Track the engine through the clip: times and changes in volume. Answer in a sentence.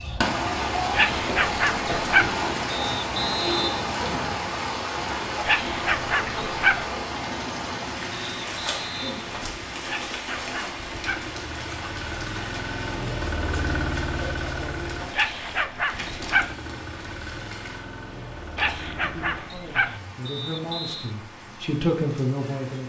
The engine can be heard from 7.0 to 19.4 s, getting louder then quieter.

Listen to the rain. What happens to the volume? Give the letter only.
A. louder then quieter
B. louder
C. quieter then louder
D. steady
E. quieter
E.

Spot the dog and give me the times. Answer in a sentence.
You can hear the dog from 0.9 to 2.4 s, from 5.5 to 6.8 s, from 9.8 to 11.3 s, from 15.1 to 16.6 s and from 18.6 to 20.0 s.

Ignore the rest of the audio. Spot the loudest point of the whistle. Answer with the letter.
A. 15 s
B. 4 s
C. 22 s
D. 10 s
B.